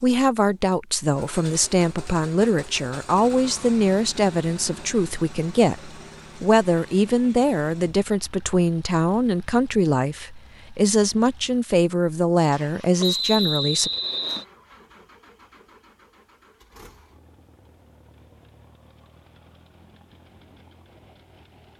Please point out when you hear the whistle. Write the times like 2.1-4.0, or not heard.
13.0-14.4.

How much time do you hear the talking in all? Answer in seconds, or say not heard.
14 s.